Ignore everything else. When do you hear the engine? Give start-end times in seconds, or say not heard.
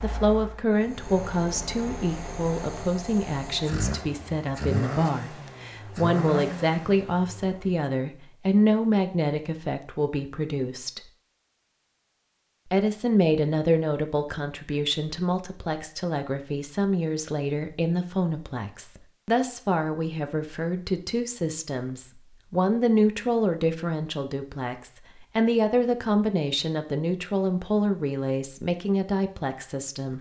0.0-7.8.